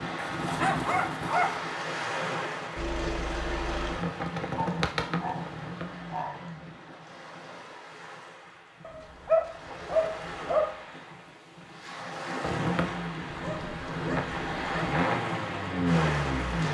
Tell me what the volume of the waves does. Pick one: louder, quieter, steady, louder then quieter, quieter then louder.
quieter then louder.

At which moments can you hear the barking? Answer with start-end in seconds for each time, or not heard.
0.1-1.6, 4.5-6.5, 8.8-10.7, 13.2-15.0.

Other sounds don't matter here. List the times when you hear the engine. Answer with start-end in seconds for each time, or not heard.
2.8-6.6, 12.4-16.6.